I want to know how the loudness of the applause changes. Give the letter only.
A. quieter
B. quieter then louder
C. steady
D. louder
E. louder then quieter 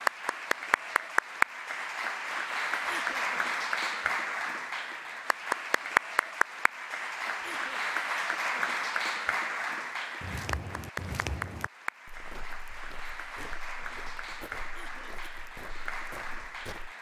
A.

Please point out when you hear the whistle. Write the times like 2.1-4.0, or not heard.
not heard.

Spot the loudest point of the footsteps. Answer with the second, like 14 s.
11 s.